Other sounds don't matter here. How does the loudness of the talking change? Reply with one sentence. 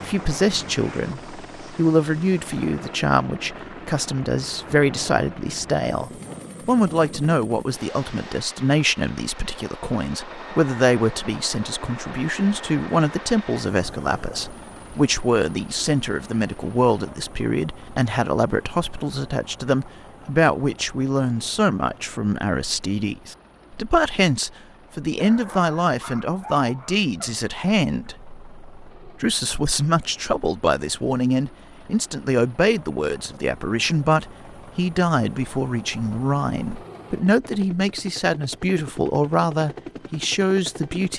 The loudness of the talking stays about the same.